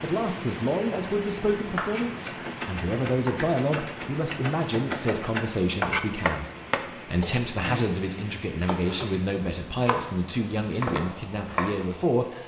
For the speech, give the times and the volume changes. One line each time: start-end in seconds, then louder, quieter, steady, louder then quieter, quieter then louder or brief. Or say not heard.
0.0-12.4 steady.